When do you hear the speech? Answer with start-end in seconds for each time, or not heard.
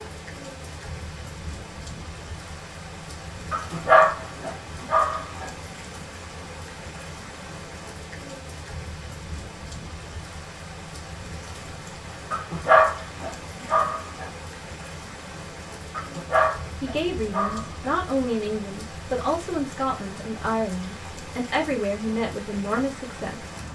16.8-23.4.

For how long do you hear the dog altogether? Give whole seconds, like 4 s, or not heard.
6 s.